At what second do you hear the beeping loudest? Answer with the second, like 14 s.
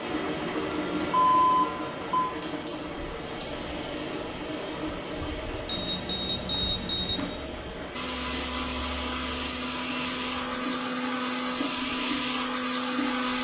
1 s.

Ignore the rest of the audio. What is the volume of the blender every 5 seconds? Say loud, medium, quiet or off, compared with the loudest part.
off, loud, loud.